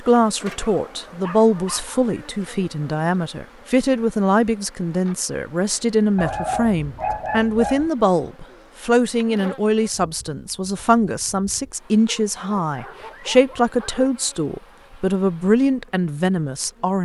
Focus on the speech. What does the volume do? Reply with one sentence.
The loudness of the speech stays about the same.